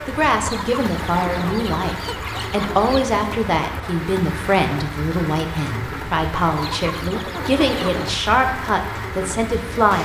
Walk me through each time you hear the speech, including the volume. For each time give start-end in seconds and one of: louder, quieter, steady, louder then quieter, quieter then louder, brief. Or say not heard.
0.1-9.9 steady.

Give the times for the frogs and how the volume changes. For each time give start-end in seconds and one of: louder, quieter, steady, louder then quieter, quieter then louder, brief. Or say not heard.
not heard.